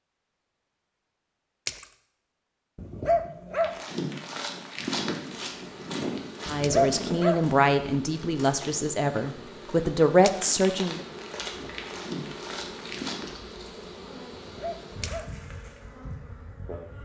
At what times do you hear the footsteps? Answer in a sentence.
The footsteps can be heard from 3.5 to 13.3 s.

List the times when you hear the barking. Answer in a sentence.
The barking can be heard from 2.8 to 3.8 s, from 6.5 to 7.5 s and from 14.3 to 15.3 s.